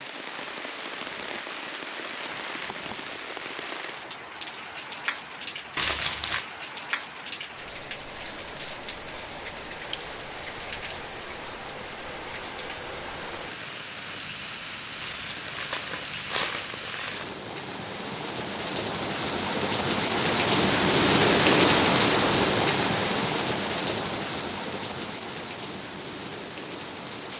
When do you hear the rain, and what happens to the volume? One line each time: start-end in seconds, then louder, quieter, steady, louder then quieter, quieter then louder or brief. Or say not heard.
0.0-27.3 louder.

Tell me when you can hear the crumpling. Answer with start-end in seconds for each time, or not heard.
5.8-6.5, 15.0-17.4.